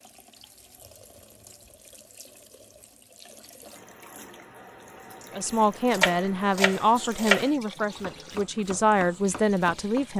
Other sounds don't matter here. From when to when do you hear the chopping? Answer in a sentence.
You can hear the chopping from 5.9 to 10.1 s.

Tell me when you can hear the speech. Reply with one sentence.
You can hear the speech from 5.3 to 10.1 s.